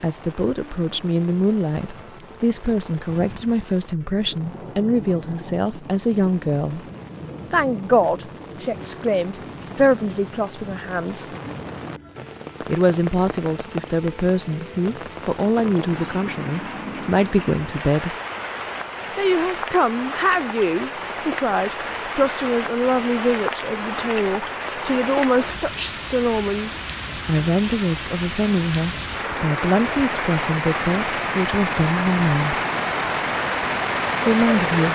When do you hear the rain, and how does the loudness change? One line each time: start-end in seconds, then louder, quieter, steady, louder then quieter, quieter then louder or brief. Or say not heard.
0.0-34.8 louder.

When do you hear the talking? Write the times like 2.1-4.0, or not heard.
0.0-6.8, 7.5-11.3, 12.7-18.1, 19.1-32.6, 34.2-34.8.